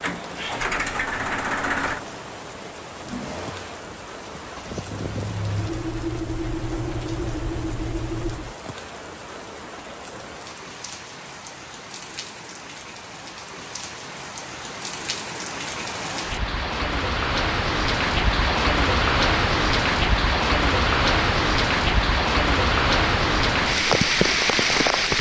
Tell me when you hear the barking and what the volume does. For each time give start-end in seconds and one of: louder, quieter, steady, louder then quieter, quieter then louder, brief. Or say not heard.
not heard.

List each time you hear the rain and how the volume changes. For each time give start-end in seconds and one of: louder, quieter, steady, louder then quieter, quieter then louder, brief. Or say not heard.
0.0-25.1 louder.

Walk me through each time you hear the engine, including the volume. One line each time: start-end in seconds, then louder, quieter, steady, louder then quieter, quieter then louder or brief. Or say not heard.
0.0-8.6 quieter then louder.